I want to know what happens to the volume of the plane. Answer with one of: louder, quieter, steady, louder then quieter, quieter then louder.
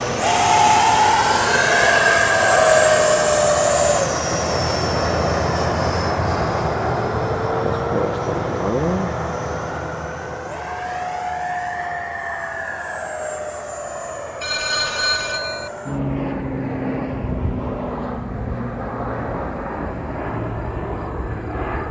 quieter.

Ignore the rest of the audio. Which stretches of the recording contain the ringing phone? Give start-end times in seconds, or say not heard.
14.4-15.7.